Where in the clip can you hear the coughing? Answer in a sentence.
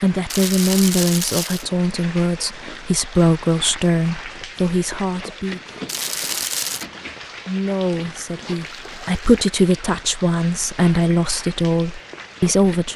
The coughing can't be heard in this clip.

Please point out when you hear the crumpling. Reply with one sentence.
The crumpling can be heard from 0.3 to 1.6 s, from 5.8 to 6.8 s and from 8.6 to 9.3 s.